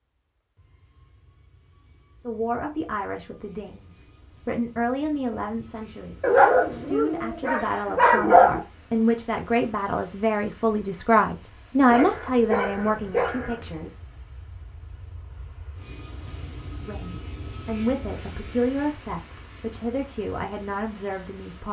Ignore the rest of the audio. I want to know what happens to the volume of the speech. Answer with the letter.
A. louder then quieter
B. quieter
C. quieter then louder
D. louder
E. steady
A.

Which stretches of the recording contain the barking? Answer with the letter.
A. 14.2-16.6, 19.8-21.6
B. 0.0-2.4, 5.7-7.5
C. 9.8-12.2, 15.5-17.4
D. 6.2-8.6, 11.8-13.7
D.